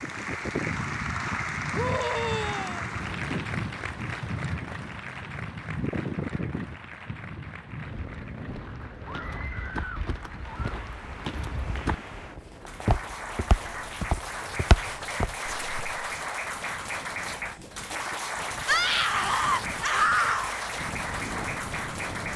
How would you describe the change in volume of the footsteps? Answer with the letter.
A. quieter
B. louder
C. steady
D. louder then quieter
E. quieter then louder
B.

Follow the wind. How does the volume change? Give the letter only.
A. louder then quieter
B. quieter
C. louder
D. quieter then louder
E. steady
D.